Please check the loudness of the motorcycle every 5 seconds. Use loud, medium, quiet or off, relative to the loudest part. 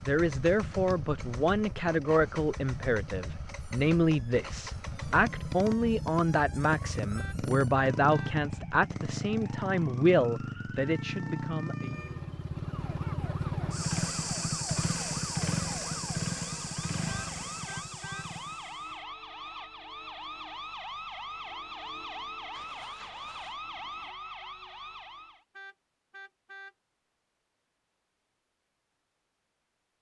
medium, loud, loud, loud, off, off.